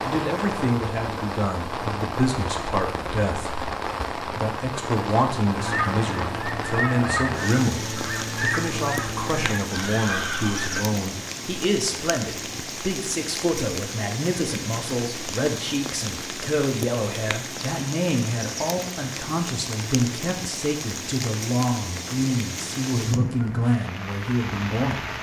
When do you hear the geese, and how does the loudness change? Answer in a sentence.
You can hear the geese from 5.5 to 10.8 s, at a steady volume.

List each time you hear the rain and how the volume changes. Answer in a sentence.
The rain can be heard from 0.0 to 25.1 s, at a steady volume.